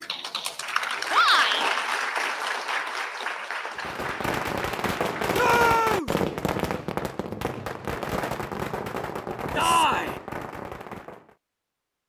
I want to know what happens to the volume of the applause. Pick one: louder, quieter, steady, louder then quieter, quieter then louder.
quieter.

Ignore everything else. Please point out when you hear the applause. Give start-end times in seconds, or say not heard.
0.0-5.4.